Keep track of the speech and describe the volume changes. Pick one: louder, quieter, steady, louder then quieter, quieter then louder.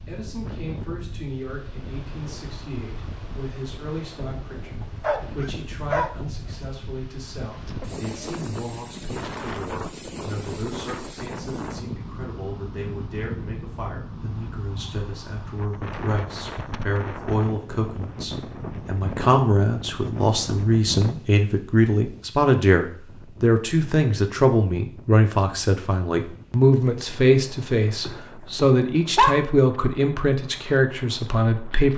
louder.